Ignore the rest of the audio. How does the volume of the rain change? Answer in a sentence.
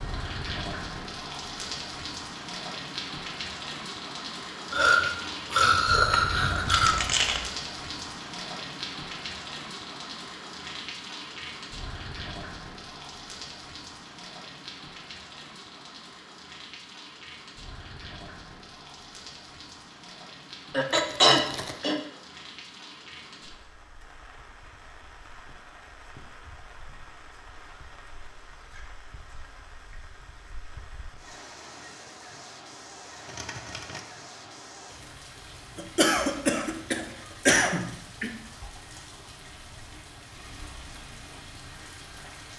The loudness of the rain goes down.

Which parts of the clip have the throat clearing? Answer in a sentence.
You can hear the throat clearing from 4.7 to 7.0 s, from 20.7 to 22.0 s and from 35.8 to 38.3 s.